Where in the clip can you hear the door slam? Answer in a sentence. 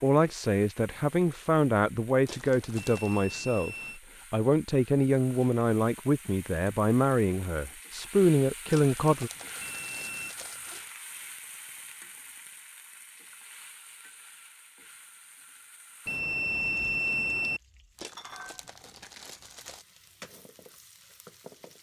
You can't hear the door slam here.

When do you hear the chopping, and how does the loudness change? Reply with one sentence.
The chopping can't be heard in this clip.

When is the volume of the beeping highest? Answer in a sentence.
The loudest moment of the beeping is at 17 seconds.